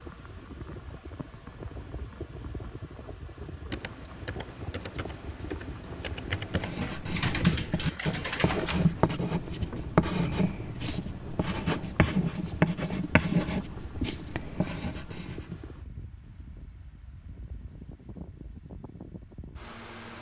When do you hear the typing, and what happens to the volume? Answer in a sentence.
You can hear the typing from 3.7 to 9.2 s, getting louder.